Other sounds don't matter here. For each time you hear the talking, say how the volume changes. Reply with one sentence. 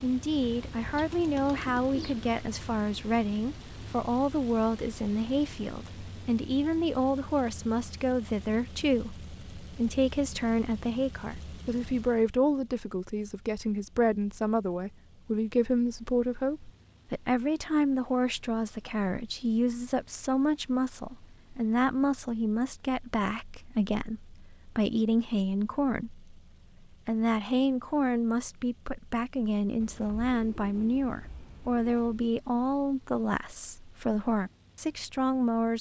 You can hear the talking from 0.0 to 35.7 s, at a steady volume.